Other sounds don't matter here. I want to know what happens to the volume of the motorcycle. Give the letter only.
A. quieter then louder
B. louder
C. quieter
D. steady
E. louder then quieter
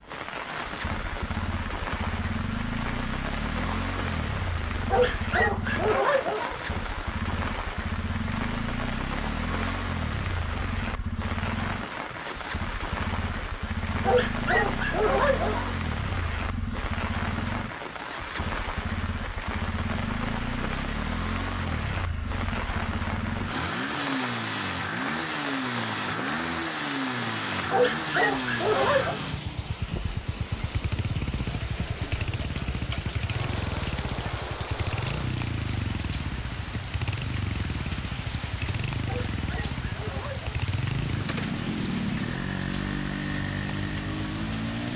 D.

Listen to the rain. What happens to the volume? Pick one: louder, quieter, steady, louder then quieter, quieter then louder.
steady.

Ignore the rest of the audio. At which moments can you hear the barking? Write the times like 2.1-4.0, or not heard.
4.9-6.8, 14.0-15.8, 27.7-29.2, 39.0-40.5.